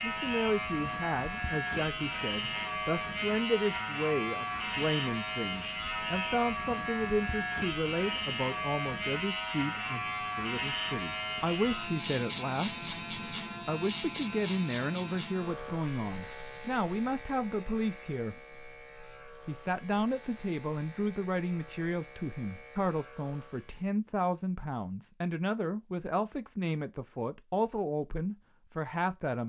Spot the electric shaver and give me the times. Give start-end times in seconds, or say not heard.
0.0-23.9.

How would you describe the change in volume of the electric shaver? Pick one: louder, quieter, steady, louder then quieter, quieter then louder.
quieter.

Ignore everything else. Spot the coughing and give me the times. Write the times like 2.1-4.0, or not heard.
not heard.